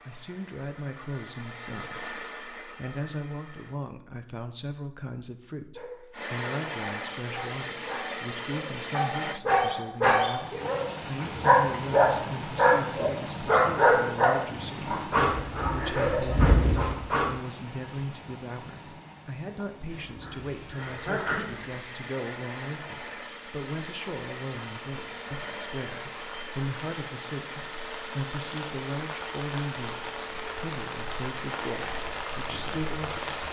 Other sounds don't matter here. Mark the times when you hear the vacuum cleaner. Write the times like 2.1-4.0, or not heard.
0.0-3.8, 6.1-9.4, 20.8-33.4.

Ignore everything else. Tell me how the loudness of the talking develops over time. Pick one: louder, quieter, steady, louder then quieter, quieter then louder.
steady.